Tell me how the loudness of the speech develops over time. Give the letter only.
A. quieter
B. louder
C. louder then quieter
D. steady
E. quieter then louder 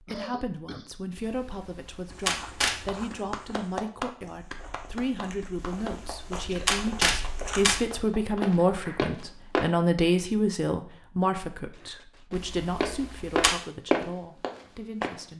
C.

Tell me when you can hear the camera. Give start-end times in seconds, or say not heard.
1.1-3.0, 5.5-7.9, 12.3-13.5.